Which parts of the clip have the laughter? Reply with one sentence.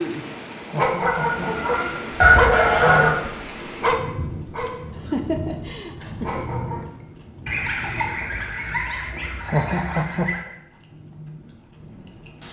The laughter can be heard from 0.7 to 1.5 s, from 5.0 to 6.5 s and from 9.4 to 10.3 s.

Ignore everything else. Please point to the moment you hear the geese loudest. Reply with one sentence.
The loudest moment of the geese is at 2 seconds.